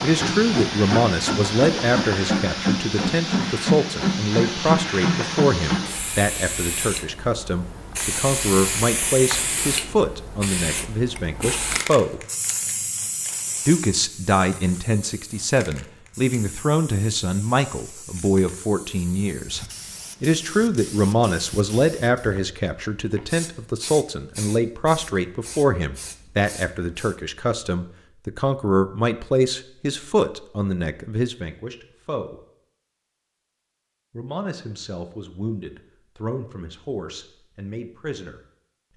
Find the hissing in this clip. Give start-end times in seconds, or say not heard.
0.0-27.2.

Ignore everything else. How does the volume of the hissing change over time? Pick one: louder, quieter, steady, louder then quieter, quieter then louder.
quieter.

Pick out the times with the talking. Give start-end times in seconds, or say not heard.
0.0-12.2, 13.7-32.4, 34.1-38.9.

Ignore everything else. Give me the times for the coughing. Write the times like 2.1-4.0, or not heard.
not heard.